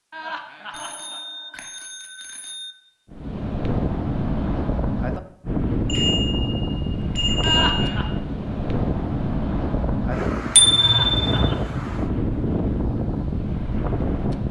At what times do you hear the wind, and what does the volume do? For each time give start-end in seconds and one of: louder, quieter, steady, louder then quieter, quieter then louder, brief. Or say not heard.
3.1-14.4 steady.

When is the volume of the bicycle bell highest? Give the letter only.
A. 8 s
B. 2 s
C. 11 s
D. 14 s
C.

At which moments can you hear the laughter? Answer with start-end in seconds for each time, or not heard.
0.1-1.2, 7.4-8.1, 10.8-11.8.